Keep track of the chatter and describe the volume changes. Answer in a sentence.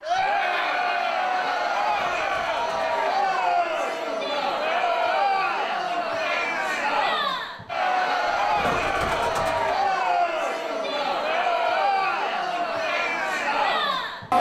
The volume of the chatter stays about the same.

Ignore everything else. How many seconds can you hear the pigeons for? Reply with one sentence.
The pigeons can be heard for 3 seconds in total.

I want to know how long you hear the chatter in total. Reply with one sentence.
You can hear the chatter for 14 seconds altogether.